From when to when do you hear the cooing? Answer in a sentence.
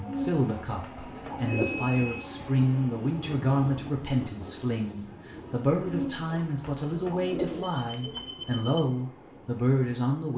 You can hear the cooing from 0.1 to 1.9 s and from 5.8 to 8.3 s.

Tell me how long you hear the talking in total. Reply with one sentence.
You can hear the talking for 10 seconds altogether.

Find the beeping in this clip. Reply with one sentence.
You can hear the beeping from 1.4 to 2.2 s and from 7.7 to 8.7 s.